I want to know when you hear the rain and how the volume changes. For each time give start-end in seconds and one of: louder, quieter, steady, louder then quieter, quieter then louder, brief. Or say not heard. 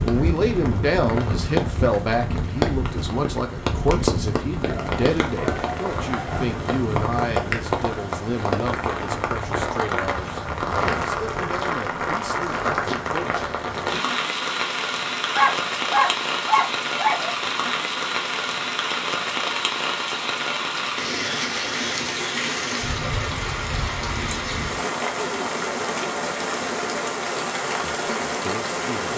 0.0-29.1 steady.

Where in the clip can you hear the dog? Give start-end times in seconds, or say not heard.
4.7-6.5, 15.3-17.3.